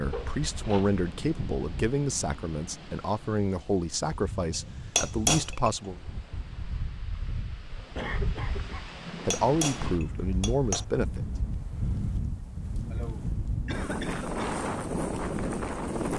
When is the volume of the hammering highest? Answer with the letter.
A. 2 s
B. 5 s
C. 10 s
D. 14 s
B.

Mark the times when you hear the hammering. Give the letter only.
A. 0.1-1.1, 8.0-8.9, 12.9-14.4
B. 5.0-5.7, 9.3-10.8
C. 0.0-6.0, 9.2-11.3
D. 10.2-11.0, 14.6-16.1
B.